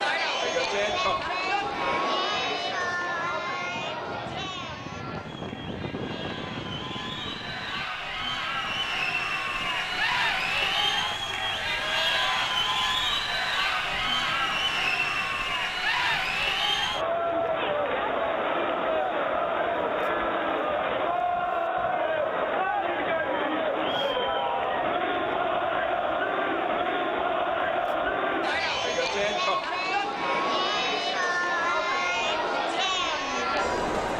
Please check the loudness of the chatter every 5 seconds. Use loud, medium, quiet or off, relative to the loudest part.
loud, medium, loud, loud, loud, loud, loud.